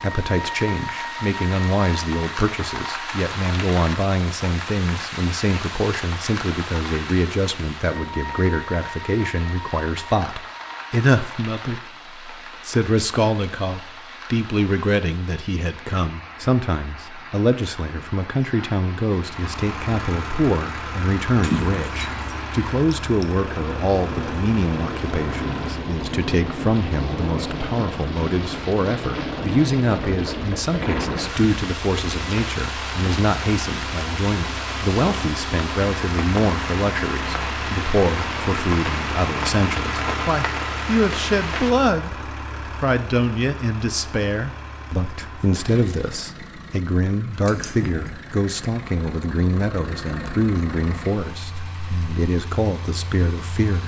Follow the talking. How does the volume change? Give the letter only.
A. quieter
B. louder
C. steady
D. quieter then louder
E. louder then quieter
C.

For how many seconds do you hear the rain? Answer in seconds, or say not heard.
42 s.